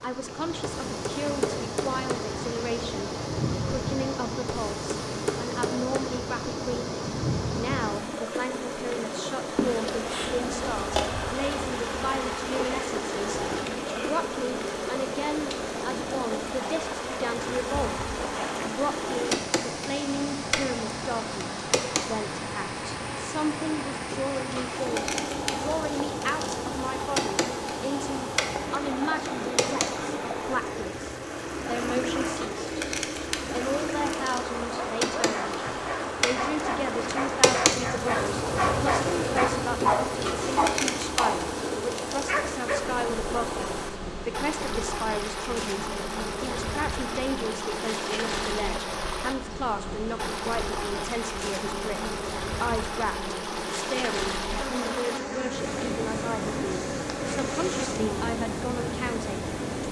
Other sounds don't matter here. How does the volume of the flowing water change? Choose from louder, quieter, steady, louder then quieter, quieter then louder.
steady.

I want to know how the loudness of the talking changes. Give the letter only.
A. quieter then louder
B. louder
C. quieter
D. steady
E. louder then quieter
D.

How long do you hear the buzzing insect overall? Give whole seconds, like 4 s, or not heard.
60 s.